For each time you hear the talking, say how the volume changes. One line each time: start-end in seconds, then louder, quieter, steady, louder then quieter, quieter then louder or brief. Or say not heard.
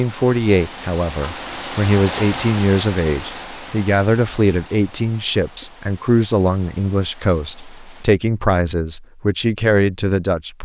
0.0-10.6 steady.